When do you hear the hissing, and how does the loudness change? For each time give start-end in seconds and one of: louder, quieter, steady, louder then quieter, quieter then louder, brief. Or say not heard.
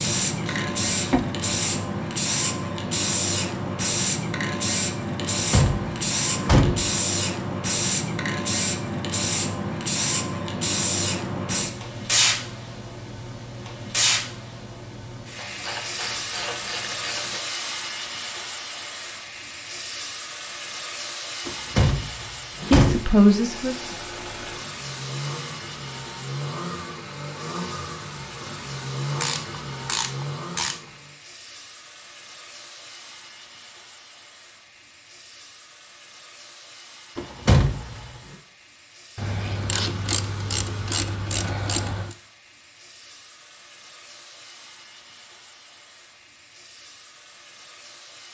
0.0-48.2 quieter.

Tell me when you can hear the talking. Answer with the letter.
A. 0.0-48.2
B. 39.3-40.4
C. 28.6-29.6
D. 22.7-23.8
D.